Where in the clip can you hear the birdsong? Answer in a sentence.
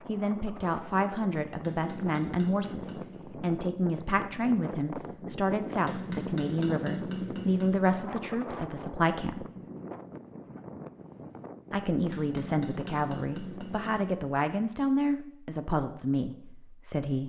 The birdsong can't be heard in this clip.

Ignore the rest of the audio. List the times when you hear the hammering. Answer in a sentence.
The hammering can be heard from 1.6 to 3.2 s, from 5.8 to 7.7 s and from 12.1 to 14.1 s.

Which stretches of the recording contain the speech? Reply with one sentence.
The speech can be heard from 0.1 to 9.4 s and from 11.7 to 17.2 s.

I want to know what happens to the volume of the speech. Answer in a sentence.
The loudness of the speech stays about the same.